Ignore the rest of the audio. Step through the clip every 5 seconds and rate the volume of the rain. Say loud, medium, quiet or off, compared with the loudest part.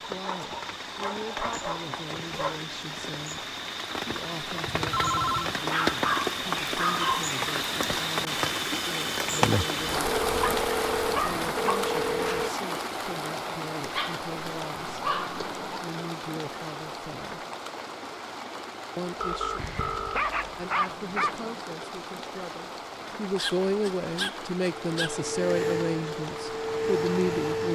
medium, loud, loud, medium, medium, medium.